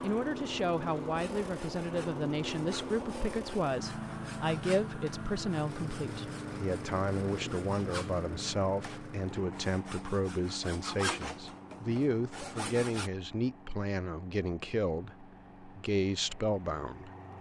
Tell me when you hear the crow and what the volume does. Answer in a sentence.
The crow can't be heard in this clip.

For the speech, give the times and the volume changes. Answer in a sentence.
You can hear the speech from 0.0 to 17.3 s, at a steady volume.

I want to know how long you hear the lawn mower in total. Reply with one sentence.
The lawn mower can be heard for 17 seconds in total.